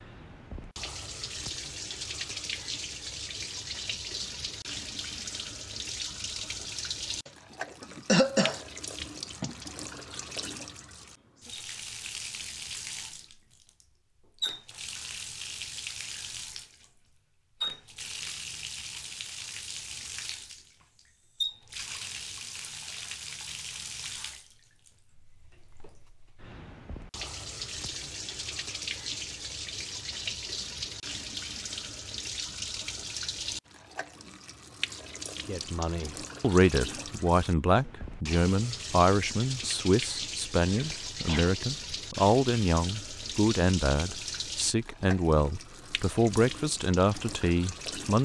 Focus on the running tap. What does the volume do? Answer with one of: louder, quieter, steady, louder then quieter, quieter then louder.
steady.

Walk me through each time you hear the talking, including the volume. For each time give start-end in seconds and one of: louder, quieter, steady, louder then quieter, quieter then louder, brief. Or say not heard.
35.5-48.2 steady.